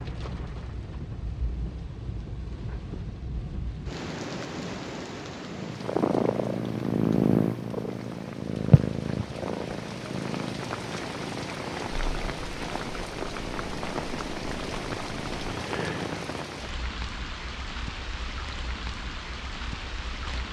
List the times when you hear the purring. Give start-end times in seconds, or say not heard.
5.4-16.6.